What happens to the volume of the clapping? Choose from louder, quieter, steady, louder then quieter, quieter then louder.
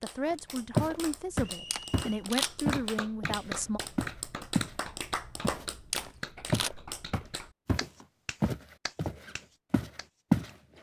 louder then quieter.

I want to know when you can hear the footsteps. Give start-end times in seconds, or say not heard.
0.3-4.8, 5.4-10.5.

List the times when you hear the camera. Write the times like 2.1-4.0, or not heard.
1.7-2.5, 5.9-6.7.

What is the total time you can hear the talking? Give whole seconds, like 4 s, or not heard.
4 s.